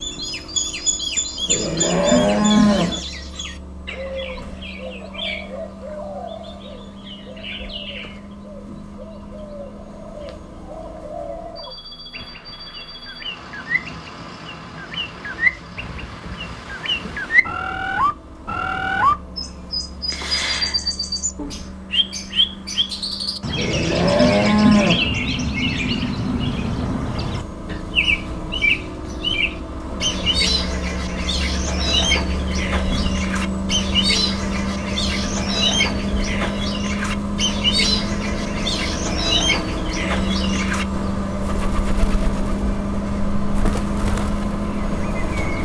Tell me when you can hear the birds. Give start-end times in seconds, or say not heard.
0.0-45.6.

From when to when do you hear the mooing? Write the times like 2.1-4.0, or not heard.
1.4-3.0, 23.6-25.1.